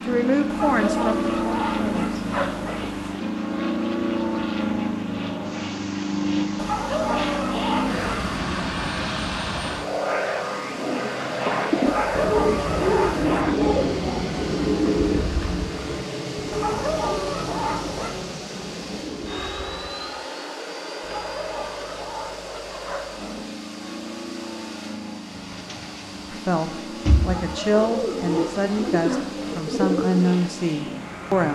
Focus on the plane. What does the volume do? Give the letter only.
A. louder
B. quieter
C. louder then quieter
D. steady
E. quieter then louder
B.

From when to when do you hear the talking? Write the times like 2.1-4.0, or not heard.
0.1-2.1, 26.3-31.4.